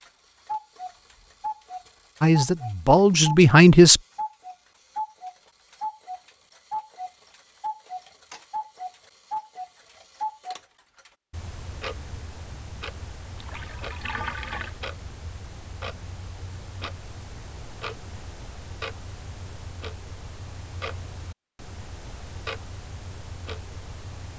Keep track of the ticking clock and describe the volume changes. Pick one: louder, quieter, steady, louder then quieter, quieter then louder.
quieter.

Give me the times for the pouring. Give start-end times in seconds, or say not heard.
13.3-14.8.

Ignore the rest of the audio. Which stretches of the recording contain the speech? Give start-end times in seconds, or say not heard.
2.2-4.0.